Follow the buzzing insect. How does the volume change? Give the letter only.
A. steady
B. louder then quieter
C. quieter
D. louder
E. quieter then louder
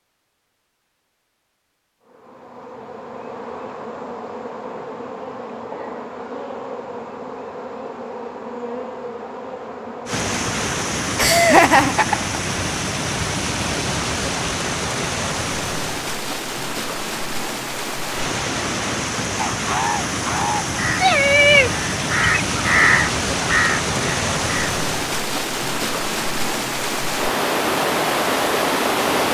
A.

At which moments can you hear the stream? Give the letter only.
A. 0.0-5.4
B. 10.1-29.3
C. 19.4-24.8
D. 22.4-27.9
B.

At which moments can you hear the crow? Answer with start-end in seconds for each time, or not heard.
19.4-24.8.